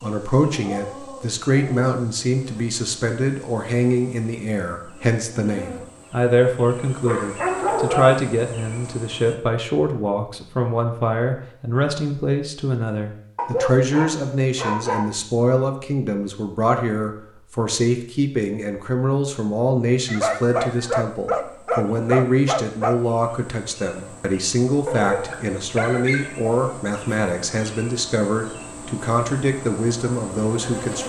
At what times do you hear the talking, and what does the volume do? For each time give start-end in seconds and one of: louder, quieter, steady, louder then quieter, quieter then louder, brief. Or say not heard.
0.0-31.0 steady.